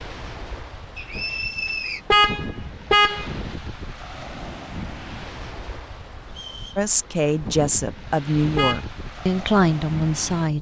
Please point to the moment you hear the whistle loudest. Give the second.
2 s.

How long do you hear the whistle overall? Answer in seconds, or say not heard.
2 s.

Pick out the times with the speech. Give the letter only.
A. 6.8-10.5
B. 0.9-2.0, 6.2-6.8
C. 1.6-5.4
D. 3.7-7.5
A.